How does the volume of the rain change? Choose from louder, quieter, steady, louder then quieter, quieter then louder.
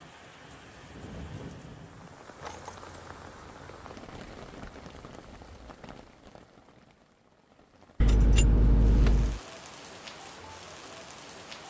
quieter then louder.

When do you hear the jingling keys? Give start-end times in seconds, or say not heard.
2.4-3.8, 8.0-9.4.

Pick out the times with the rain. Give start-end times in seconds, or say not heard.
0.0-11.6.